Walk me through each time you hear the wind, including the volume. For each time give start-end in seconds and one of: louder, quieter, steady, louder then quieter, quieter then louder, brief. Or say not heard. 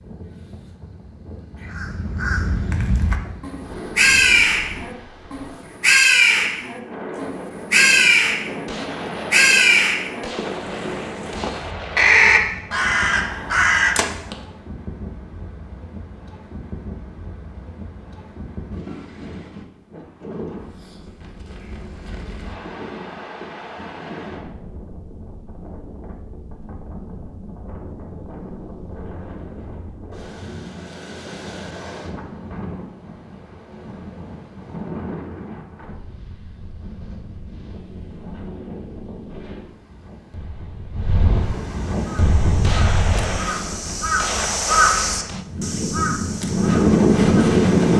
0.0-47.9 louder.